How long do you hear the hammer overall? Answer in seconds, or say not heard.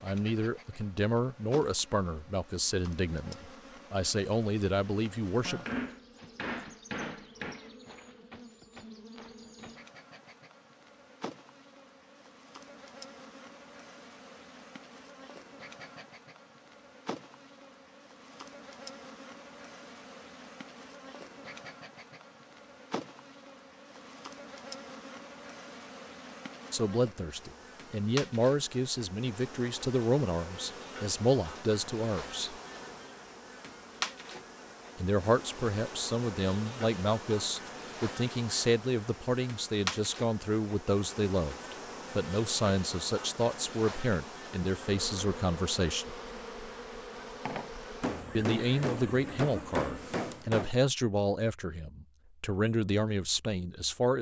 5 s.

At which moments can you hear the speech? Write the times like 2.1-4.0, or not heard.
0.0-5.7, 26.7-32.5, 35.0-46.1, 48.4-54.1.